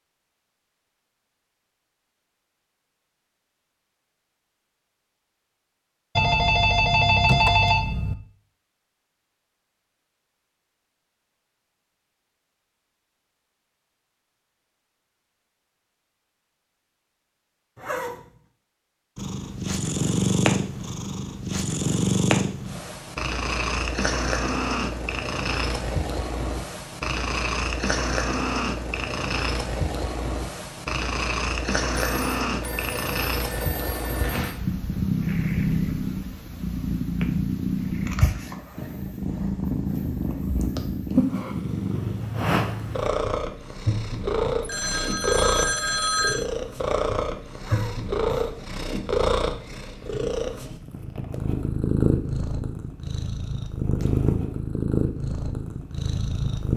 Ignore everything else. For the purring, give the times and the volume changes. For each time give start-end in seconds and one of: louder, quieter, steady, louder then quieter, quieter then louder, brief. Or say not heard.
19.1-56.7 steady.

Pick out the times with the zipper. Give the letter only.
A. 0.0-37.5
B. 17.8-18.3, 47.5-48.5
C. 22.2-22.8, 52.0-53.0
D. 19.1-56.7
B.